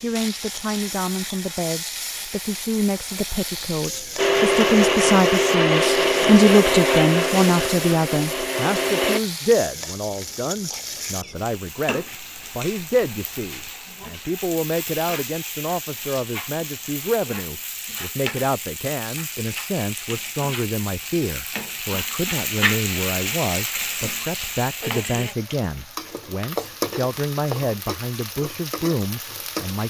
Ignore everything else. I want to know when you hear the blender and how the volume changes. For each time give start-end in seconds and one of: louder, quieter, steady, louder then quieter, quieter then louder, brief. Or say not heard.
4.2-9.2 quieter.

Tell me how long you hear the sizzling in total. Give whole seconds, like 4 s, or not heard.
30 s.